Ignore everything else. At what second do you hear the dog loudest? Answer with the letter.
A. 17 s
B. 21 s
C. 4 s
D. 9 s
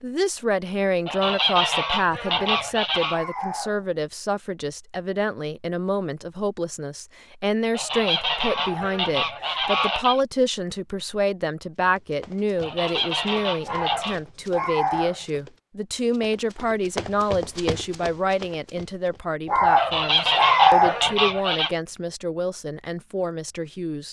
B.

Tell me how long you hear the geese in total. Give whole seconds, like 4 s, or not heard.
8 s.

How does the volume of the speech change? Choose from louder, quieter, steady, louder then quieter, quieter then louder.
steady.